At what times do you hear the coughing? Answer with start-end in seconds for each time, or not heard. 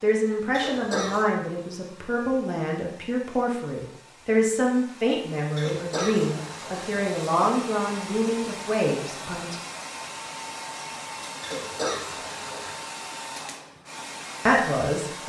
0.5-1.2, 5.5-7.2, 11.4-12.8.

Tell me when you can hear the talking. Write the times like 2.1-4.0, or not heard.
0.0-9.6, 14.4-15.2.